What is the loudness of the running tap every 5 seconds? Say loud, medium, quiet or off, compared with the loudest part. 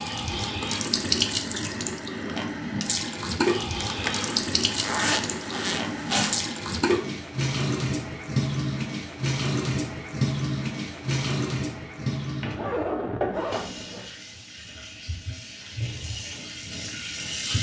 loud, loud, loud, medium.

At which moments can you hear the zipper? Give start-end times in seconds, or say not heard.
3.8-6.5, 12.4-14.1.